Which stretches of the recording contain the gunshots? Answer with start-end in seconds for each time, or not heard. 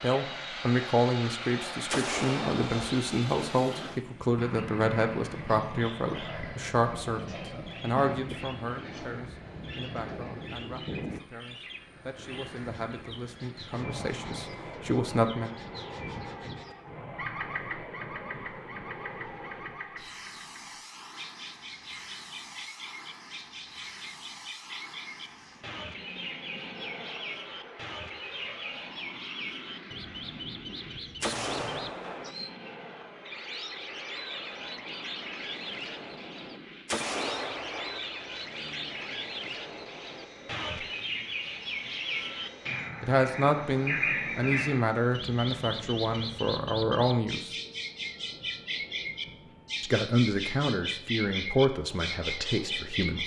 1.9-3.0, 31.2-32.4, 36.9-38.0.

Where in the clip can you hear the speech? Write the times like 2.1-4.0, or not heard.
0.0-15.5, 43.0-47.5, 49.8-53.2.